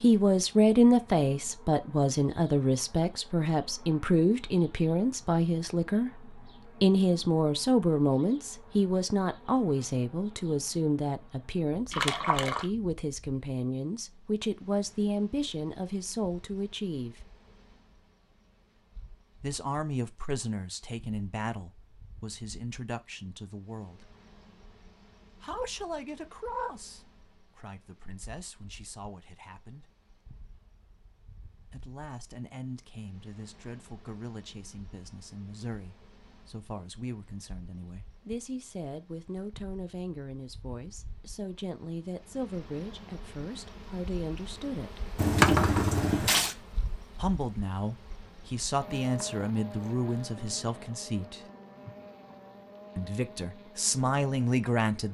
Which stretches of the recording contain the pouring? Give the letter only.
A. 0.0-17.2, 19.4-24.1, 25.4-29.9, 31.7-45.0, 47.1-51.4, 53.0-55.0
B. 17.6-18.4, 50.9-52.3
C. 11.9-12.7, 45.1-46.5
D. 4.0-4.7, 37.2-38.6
C.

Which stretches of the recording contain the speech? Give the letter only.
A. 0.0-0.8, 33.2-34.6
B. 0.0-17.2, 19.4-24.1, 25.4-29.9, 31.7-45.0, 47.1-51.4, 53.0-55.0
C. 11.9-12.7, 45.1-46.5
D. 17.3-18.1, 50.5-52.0
B.